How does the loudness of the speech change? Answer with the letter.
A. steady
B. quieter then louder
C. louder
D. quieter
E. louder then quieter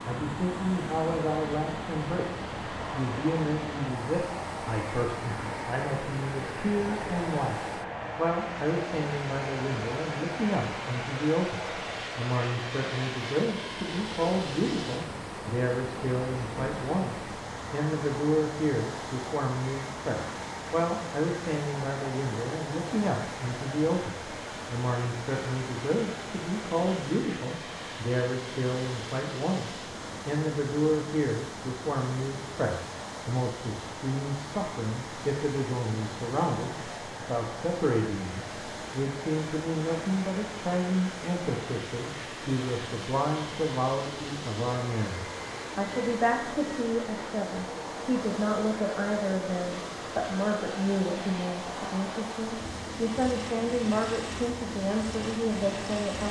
A.